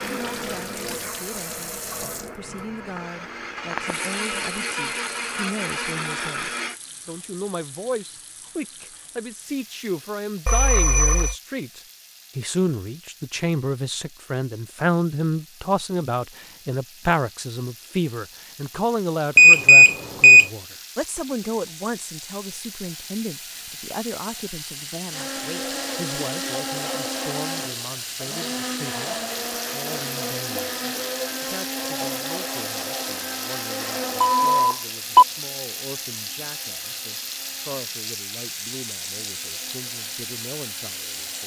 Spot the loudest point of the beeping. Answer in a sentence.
The loudest moment of the beeping is at 20 seconds.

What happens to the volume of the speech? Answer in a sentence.
The loudness of the speech goes up, then down.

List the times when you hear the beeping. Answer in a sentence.
You can hear the beeping from 10.4 to 11.3 s, from 19.4 to 20.4 s and from 34.2 to 35.2 s.